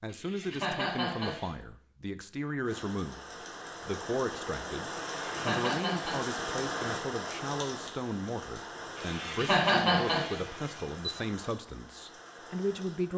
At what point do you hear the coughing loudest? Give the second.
10 s.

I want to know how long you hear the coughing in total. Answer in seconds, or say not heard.
5 s.